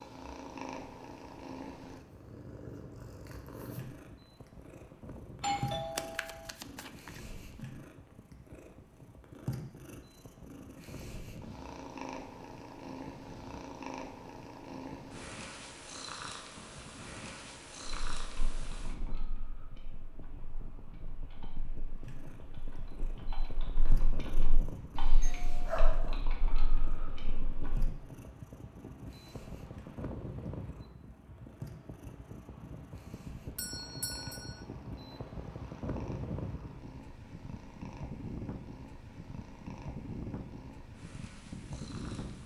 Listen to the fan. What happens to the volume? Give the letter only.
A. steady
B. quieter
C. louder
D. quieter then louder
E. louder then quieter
C.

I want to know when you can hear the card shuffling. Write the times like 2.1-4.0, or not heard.
6.0-7.2.